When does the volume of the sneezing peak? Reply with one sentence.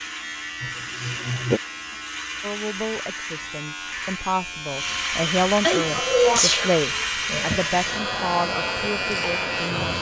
The volume of the sneezing peaks at 6 seconds.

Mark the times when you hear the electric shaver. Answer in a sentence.
The electric shaver can be heard from 0.0 to 9.9 s.